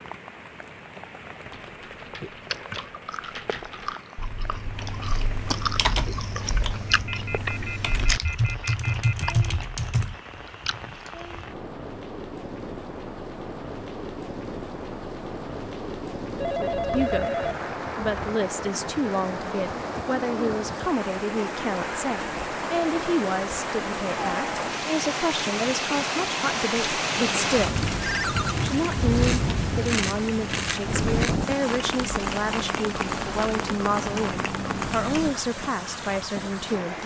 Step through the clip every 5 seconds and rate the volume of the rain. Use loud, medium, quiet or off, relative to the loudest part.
quiet, quiet, medium, medium, loud, loud, loud, medium.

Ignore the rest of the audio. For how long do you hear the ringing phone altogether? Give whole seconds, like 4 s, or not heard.
5 s.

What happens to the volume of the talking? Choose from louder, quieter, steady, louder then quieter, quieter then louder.
steady.